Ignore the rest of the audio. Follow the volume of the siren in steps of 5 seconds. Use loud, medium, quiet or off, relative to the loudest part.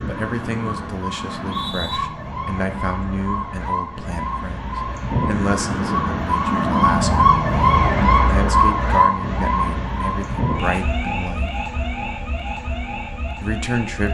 medium, loud, medium.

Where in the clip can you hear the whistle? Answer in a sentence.
The whistle can be heard from 1.2 to 2.0 s.